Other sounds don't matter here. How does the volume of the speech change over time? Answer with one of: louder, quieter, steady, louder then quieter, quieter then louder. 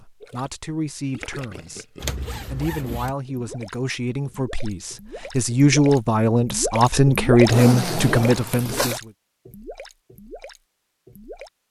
louder.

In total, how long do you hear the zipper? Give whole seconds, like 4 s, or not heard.
3 s.